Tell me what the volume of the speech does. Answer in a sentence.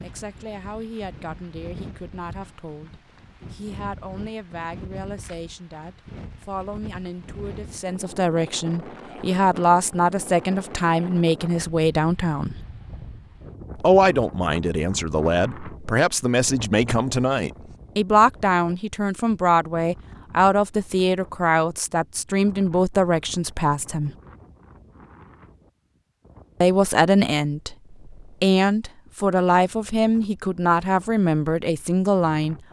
The loudness of the speech goes up.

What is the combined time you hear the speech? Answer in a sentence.
You can hear the speech for 29 seconds altogether.